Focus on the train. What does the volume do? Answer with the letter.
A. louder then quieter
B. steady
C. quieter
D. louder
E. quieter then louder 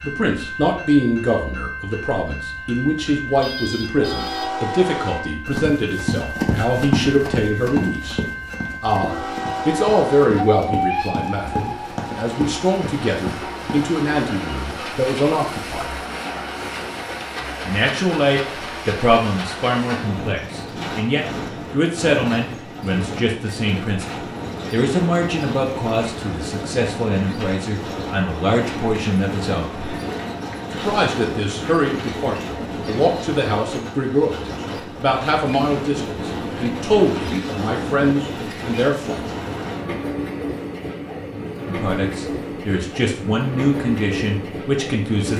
B.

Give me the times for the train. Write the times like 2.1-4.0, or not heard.
0.0-45.3.